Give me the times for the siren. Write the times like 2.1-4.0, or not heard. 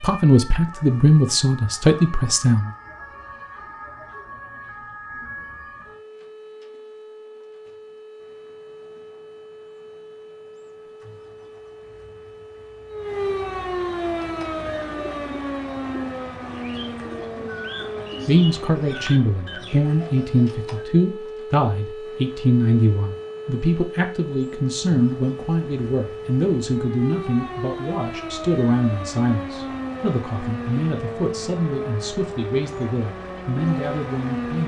0.0-34.6.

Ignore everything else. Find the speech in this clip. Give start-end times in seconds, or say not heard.
0.0-2.7, 18.2-34.6.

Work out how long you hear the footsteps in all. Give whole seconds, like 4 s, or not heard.
not heard.